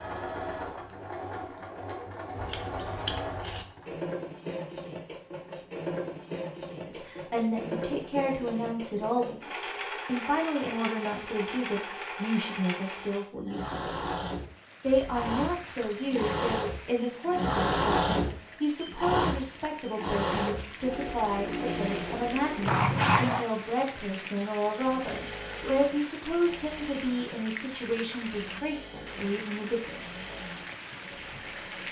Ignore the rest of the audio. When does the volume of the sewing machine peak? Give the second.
18 s.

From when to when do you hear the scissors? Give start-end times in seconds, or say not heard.
2.4-3.6, 14.8-16.3, 22.6-23.4.